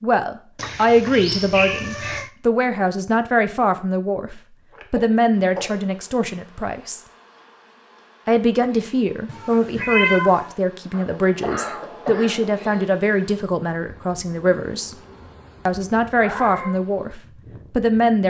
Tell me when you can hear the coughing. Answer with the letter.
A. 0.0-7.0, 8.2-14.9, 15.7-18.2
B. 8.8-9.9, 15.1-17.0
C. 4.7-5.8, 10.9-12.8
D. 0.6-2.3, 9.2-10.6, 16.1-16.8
C.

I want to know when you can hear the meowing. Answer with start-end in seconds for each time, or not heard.
0.6-2.3, 9.2-10.6, 16.1-16.8.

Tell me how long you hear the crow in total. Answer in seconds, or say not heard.
not heard.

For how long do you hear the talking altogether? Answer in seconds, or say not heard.
16 s.